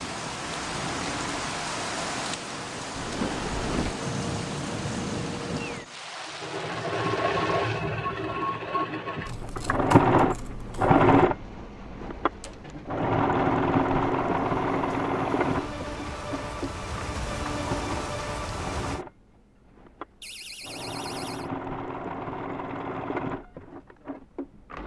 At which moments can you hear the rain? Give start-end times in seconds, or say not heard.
0.0-19.1.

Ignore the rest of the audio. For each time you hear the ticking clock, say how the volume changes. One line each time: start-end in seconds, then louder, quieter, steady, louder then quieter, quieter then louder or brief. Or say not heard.
not heard.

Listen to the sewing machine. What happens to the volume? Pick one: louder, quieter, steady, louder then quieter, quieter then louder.
louder then quieter.